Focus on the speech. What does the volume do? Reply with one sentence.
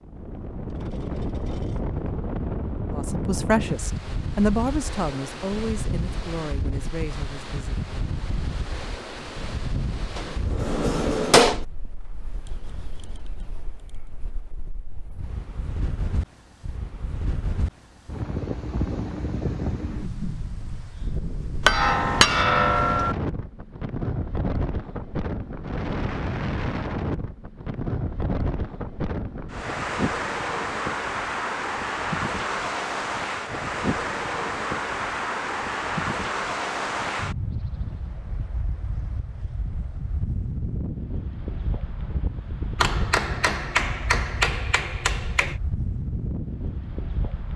The volume of the speech goes down.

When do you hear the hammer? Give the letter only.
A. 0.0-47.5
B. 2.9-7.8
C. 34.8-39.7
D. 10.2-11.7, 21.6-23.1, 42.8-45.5
D.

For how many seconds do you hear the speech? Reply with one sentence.
The speech can be heard for 5 seconds in total.